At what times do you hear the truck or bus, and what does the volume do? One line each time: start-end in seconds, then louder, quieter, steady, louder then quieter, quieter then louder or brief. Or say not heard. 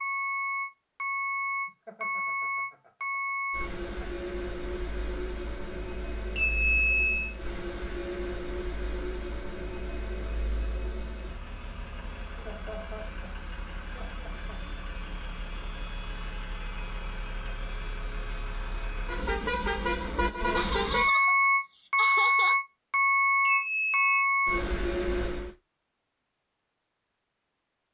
0.0-25.6 quieter then louder.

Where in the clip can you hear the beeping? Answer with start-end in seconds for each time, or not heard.
6.3-7.3, 23.4-24.2.